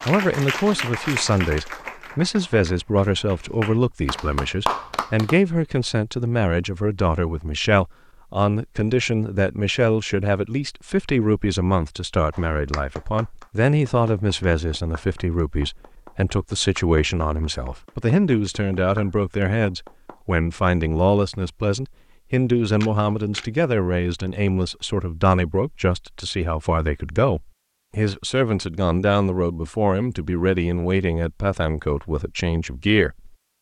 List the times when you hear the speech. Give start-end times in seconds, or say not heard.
0.0-33.3.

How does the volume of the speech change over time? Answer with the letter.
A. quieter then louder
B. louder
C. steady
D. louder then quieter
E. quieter
C.